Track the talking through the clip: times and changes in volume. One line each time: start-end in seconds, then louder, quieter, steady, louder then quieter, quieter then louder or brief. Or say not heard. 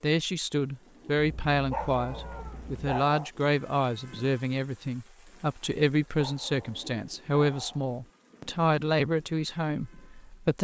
0.0-10.5 steady.